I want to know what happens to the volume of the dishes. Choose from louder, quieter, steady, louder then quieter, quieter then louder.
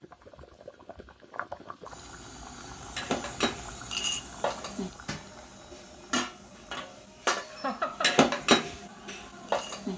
quieter then louder.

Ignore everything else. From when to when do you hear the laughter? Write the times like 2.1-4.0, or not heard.
7.5-8.2.